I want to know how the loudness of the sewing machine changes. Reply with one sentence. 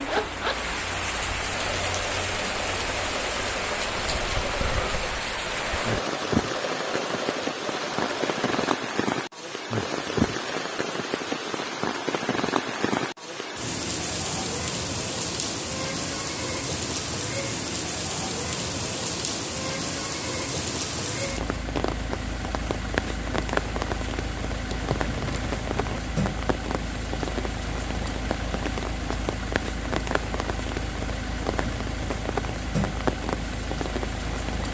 The volume of the sewing machine stays about the same.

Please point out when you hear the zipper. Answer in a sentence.
The zipper can be heard from 0.1 to 0.7 s and from 24.6 to 26.0 s.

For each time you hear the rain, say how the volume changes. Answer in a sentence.
You can hear the rain from 0.0 to 34.6 s, at a steady volume.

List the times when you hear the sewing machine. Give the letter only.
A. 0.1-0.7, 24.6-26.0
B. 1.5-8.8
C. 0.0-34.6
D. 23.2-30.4
B.